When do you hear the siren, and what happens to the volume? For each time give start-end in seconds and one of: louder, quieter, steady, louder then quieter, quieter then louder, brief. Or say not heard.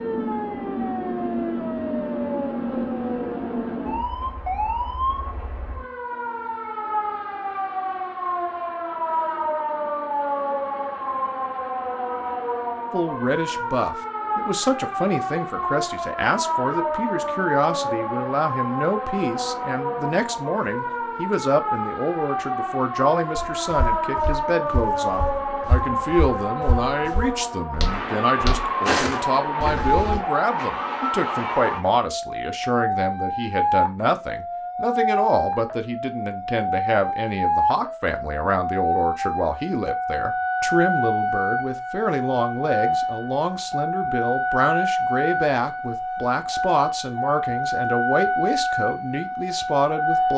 0.0-50.3 steady.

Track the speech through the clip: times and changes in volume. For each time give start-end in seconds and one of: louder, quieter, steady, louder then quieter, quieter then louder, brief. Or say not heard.
12.9-50.3 steady.